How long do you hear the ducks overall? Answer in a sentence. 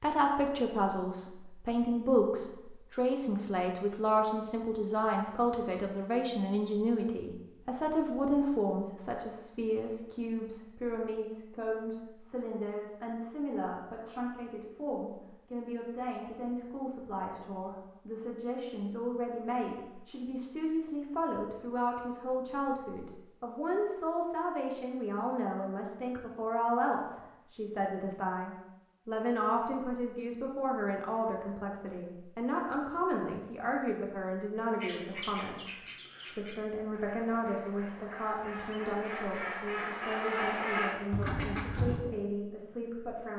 You can hear the ducks for 7 seconds altogether.